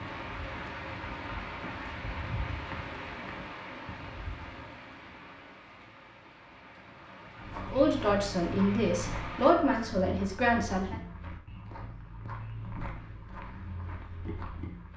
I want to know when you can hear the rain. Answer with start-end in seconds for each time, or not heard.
0.0-9.6.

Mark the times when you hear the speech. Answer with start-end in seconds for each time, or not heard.
7.7-11.0.